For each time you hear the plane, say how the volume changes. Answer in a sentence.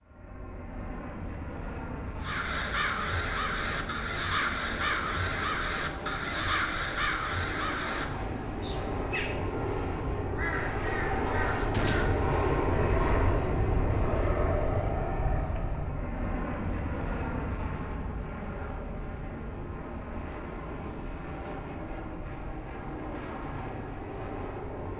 You can hear the plane from 0.0 to 24.9 s, getting louder then quieter.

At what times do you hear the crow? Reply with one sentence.
You can hear the crow from 2.2 to 12.3 s.